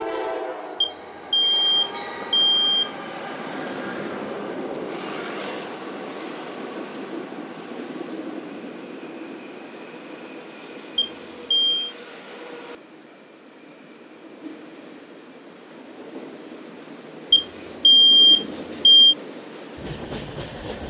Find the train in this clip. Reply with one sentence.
The train can be heard from 0.0 to 20.8 s.